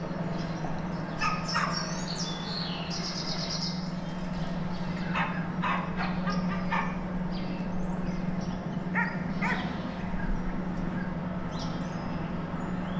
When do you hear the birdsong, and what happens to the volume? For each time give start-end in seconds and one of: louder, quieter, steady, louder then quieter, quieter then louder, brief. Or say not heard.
0.0-12.9 steady.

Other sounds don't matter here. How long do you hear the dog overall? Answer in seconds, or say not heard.
5 s.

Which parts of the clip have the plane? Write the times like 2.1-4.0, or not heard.
0.0-3.6.